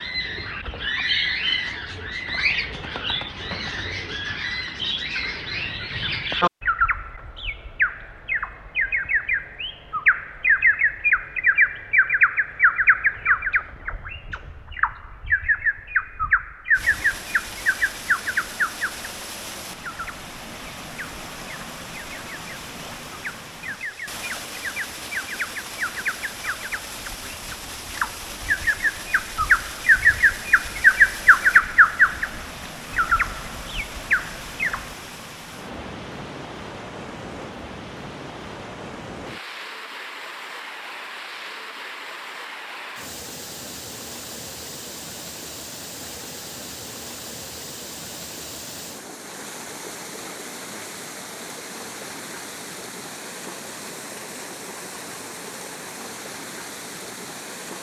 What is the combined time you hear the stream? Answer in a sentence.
You can hear the stream for 41 seconds altogether.